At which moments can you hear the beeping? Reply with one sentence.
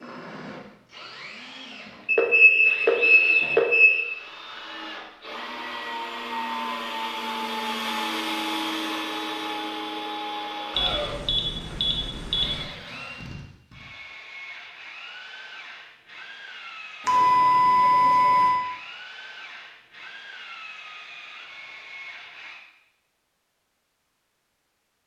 The beeping can be heard from 2.0 to 4.0 s, from 10.8 to 12.7 s and from 17.1 to 18.6 s.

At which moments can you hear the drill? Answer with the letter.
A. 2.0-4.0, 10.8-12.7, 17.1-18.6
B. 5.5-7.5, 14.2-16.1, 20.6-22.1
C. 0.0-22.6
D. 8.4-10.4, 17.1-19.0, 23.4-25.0
C.